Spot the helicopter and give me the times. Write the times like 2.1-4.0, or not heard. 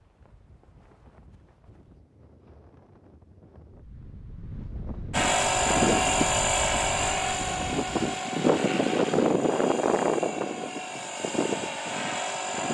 5.1-12.6.